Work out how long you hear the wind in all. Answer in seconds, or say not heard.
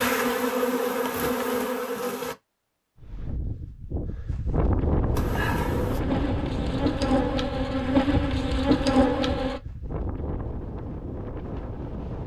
9 s.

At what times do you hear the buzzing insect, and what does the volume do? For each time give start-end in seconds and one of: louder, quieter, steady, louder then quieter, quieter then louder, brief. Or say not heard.
0.0-2.4 brief
5.2-9.6 louder.